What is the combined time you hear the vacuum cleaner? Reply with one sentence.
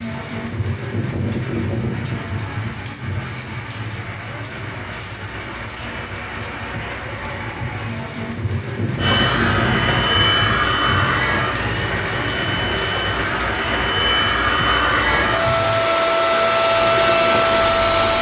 You can hear the vacuum cleaner for 9 seconds altogether.